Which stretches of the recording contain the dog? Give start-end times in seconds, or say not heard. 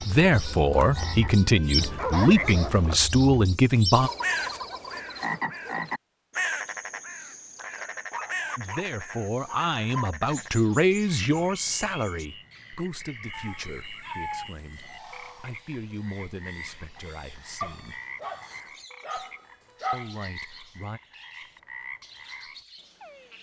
1.8-3.0, 8.1-10.1, 13.3-14.9, 17.6-20.1.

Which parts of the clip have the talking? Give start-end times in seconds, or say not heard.
0.1-4.1, 8.6-18.0, 19.9-21.0.